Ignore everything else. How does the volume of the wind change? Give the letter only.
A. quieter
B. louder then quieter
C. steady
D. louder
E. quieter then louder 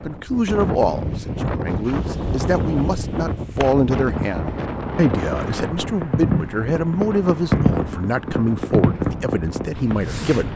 A.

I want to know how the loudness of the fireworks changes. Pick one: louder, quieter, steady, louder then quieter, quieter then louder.
louder.